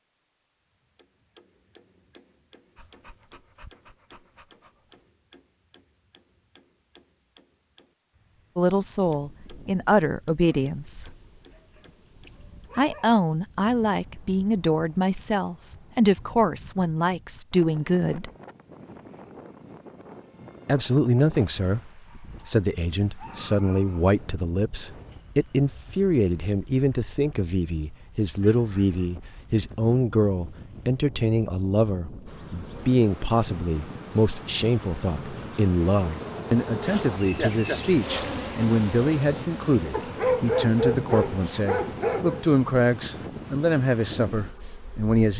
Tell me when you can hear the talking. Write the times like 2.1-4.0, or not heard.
8.6-11.1, 12.8-18.3, 20.6-45.3.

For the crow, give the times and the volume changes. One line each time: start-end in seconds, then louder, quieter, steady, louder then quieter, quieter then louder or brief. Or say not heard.
not heard.